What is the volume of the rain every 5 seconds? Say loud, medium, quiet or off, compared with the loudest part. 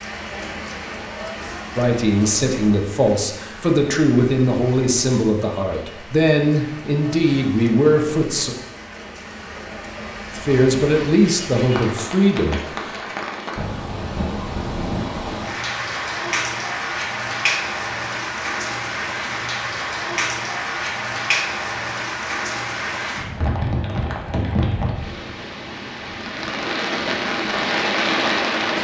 medium, quiet, medium, loud, loud, loud.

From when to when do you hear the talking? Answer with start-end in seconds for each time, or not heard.
1.8-8.6, 10.3-12.9.